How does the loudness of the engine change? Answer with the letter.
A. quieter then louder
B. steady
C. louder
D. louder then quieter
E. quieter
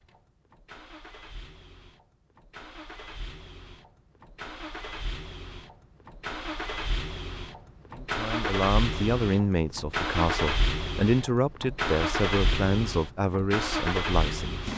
C.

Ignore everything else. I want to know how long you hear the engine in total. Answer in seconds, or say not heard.
15 s.